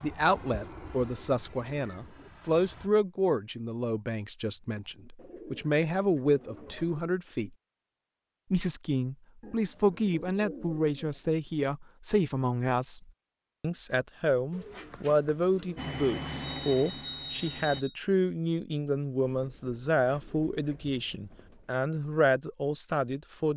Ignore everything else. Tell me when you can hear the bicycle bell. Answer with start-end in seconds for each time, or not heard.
16.4-17.9.